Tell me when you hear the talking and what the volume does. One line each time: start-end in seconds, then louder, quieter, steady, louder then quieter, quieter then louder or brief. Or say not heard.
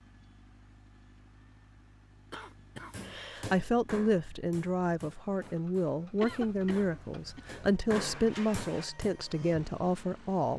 3.4-10.5 steady.